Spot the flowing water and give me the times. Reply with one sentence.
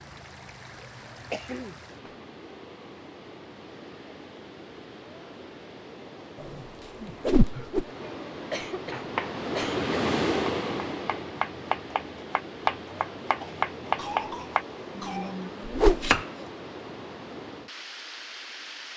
You can hear the flowing water from 0.0 to 18.9 s.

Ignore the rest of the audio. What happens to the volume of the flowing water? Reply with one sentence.
The volume of the flowing water goes up, then down.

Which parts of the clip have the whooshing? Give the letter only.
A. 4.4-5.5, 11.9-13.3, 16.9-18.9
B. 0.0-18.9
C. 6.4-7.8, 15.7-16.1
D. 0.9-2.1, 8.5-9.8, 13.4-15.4
C.